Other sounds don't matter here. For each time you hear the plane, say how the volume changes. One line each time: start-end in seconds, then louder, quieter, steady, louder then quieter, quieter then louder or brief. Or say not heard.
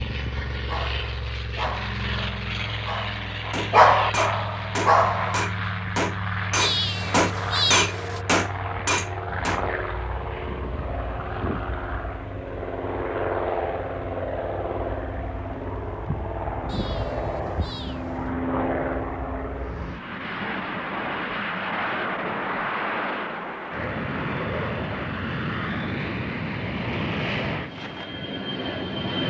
0.0-29.2 steady.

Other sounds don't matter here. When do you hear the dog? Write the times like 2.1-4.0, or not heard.
0.6-5.5.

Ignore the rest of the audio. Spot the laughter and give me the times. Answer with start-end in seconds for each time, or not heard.
not heard.